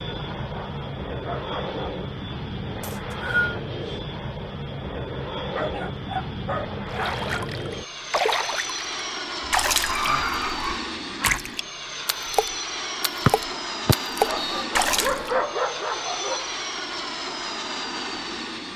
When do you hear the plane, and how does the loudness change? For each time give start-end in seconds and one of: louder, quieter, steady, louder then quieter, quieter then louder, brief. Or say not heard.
0.0-18.7 steady.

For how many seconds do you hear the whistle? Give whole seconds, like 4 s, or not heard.
2 s.